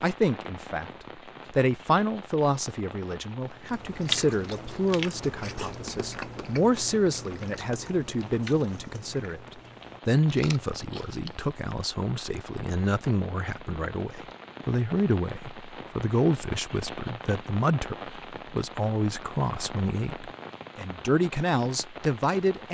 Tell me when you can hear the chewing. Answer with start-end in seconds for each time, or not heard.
3.5-11.5.